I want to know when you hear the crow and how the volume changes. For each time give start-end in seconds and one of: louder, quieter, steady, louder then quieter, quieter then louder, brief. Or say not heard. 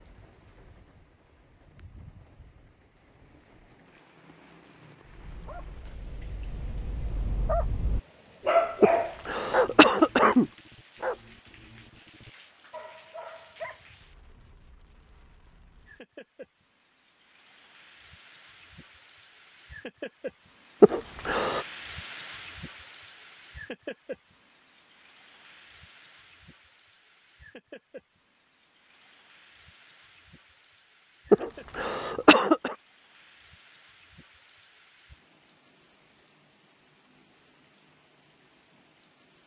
not heard.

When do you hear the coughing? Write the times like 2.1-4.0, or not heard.
8.8-10.4, 20.8-21.6, 31.3-32.8.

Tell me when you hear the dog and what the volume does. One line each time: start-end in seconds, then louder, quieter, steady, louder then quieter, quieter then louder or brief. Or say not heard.
5.0-13.8 louder then quieter.